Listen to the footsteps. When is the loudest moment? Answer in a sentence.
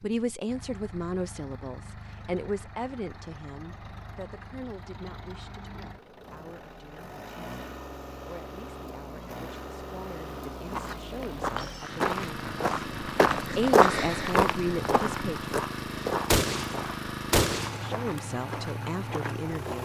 The loudest moment of the footsteps is at 14 seconds.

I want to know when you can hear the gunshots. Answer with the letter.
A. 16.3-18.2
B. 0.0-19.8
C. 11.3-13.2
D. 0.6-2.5
A.